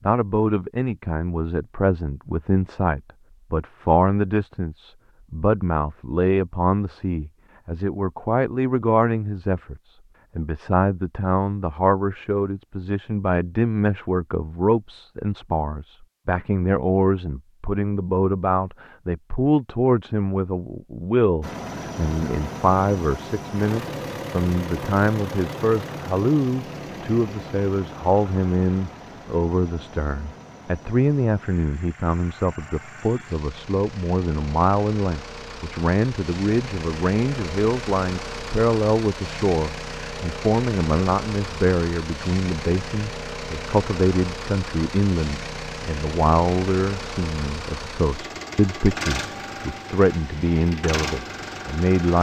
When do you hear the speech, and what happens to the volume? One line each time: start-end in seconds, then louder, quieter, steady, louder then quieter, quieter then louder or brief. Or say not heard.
0.1-52.1 steady.